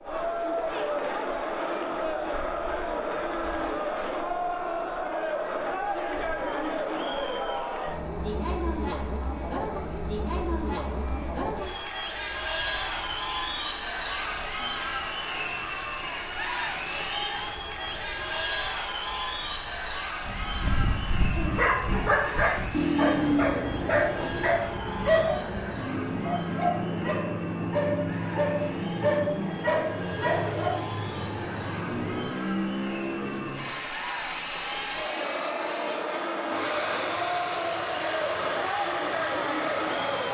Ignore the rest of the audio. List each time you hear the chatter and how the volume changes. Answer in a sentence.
The chatter can be heard from 0.0 to 40.2 s, getting quieter then louder.